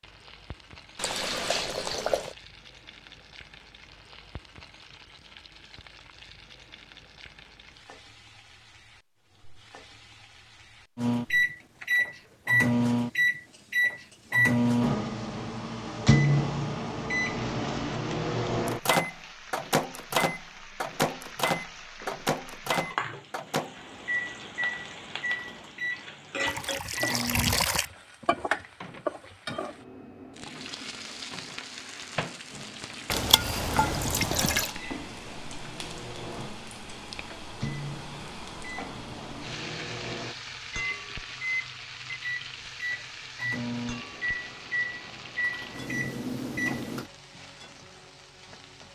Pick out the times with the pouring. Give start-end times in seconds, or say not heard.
0.9-2.4, 26.4-27.9, 33.1-34.7.